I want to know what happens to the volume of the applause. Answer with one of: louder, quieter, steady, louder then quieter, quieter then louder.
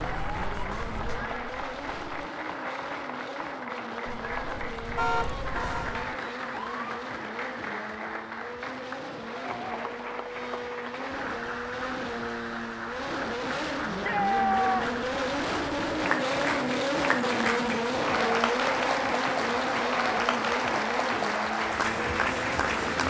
louder.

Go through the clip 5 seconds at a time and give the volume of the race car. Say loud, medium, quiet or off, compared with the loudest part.
medium, medium, medium, loud, medium.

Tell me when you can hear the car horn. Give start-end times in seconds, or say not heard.
5.0-6.0.